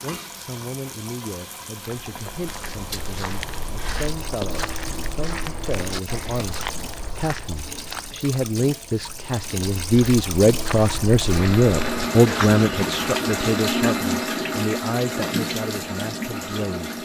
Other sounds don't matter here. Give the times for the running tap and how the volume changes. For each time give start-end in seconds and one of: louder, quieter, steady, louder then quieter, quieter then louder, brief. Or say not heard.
0.0-17.0 louder.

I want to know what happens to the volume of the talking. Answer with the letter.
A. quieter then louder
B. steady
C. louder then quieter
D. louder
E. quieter
C.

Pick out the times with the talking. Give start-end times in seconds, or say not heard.
0.0-16.9.